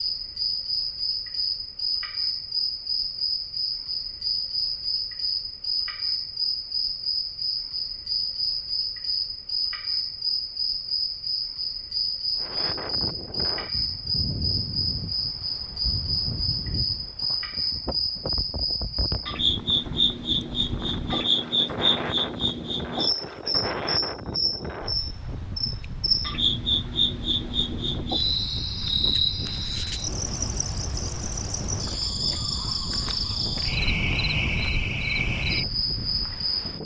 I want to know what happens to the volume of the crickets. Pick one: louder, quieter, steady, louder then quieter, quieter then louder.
steady.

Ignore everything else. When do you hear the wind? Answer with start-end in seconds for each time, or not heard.
12.3-36.8.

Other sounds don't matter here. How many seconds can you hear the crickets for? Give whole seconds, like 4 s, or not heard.
37 s.